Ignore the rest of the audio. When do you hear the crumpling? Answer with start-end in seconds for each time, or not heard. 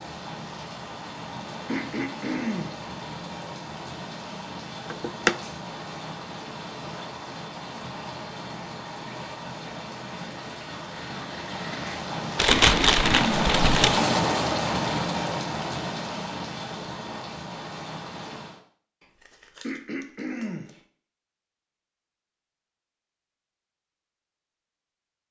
4.9-5.5, 12.3-14.1, 19.0-20.9.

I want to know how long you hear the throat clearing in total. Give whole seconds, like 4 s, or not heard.
3 s.